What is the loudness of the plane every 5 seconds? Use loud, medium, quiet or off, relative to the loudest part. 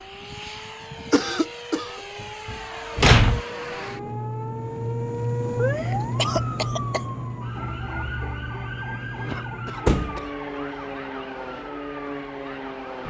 medium, loud, loud.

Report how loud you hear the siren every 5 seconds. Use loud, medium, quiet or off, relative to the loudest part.
medium, loud, medium.